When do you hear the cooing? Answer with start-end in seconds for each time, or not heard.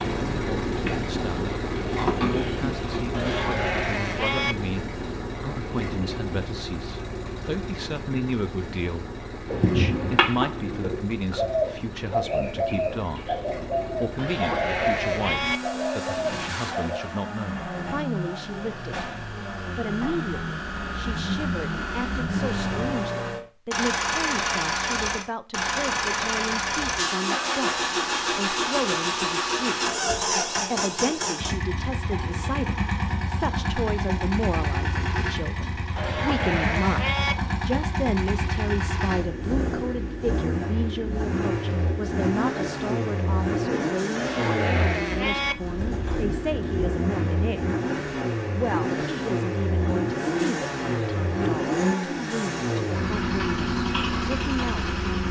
0.0-3.5, 9.4-17.0.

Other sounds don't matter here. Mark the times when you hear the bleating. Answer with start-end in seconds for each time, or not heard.
3.1-4.5, 14.2-15.6, 36.0-37.4, 44.1-45.5.